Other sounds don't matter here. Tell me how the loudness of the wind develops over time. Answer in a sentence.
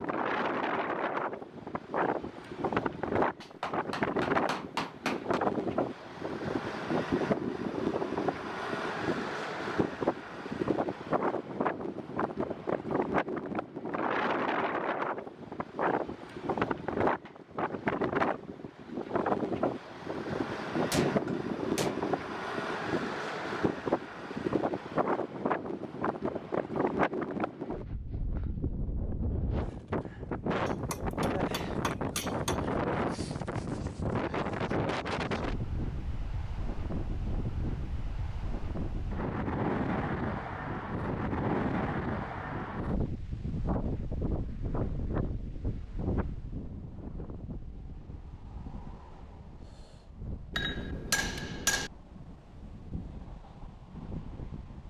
The loudness of the wind goes down.